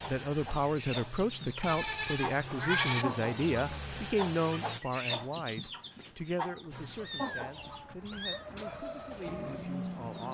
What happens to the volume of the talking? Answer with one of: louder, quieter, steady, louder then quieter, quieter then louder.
quieter.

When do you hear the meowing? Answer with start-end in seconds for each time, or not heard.
2.5-3.0, 6.8-8.4.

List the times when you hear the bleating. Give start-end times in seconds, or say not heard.
1.6-3.0.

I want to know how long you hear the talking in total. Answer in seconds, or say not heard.
10 s.